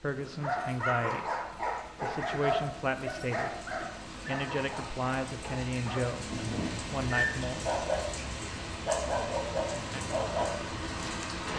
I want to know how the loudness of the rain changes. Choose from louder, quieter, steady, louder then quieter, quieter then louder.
louder.